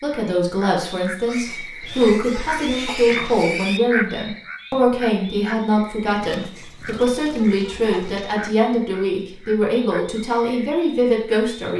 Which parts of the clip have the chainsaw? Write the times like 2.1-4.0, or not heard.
not heard.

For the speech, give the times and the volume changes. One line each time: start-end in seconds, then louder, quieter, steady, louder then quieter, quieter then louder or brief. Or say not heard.
0.0-11.7 steady.